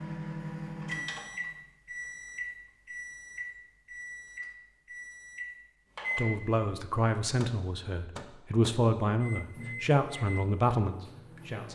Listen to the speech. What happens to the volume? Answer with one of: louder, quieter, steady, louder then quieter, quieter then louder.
quieter then louder.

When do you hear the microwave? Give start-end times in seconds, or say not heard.
0.0-11.7.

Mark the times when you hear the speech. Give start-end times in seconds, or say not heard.
6.2-11.7.